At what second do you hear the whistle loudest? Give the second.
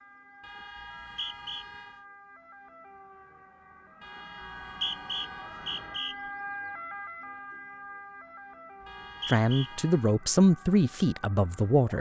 5 s.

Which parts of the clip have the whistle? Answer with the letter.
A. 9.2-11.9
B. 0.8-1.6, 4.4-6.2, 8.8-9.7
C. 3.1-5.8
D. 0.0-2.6
B.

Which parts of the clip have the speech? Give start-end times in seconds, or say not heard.
9.2-11.9.